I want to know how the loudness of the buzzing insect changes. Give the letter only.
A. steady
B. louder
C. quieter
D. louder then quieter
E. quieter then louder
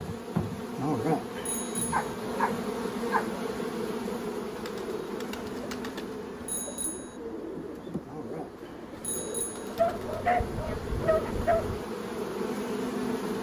E.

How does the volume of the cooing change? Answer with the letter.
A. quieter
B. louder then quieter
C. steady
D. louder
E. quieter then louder
C.